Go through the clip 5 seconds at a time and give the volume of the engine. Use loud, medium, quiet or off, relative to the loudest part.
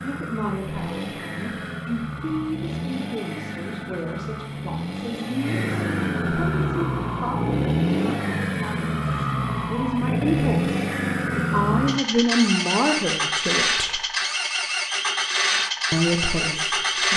medium, loud, loud, loud.